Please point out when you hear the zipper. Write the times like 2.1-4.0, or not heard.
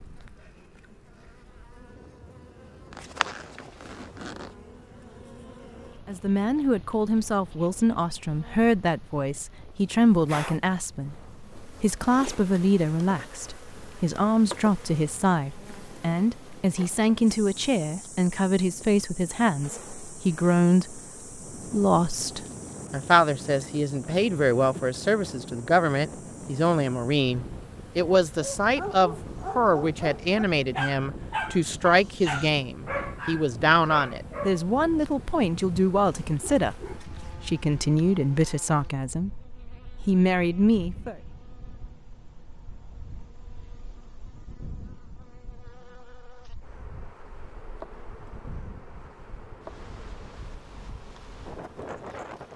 2.9-4.5.